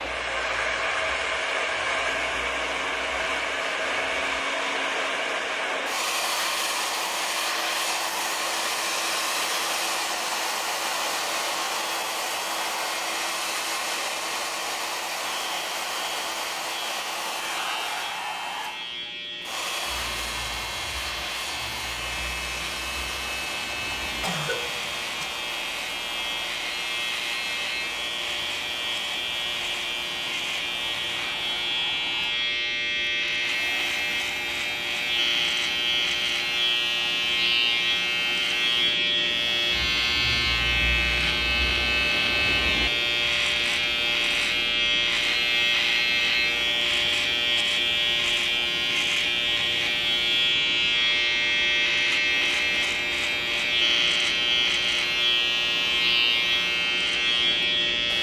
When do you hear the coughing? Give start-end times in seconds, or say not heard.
24.2-25.3.